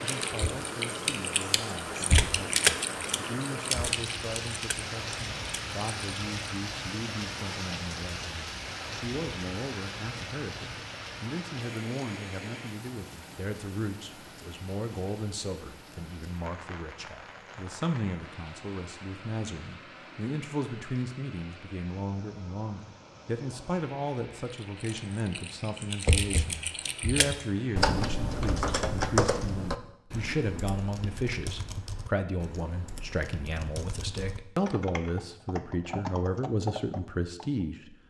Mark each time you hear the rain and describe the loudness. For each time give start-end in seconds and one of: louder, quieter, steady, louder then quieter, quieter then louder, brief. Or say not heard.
0.0-27.8 quieter.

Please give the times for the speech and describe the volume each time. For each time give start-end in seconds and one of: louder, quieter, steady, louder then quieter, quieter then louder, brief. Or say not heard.
0.0-38.0 louder.